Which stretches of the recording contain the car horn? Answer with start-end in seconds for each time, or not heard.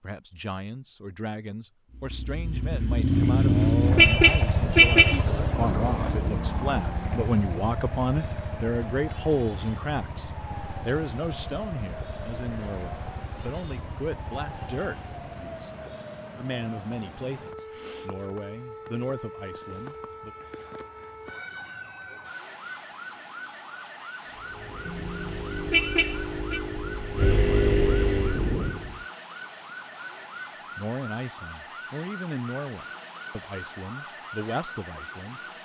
3.1-5.2, 24.9-26.6.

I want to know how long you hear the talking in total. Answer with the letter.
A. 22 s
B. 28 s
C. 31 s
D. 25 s
D.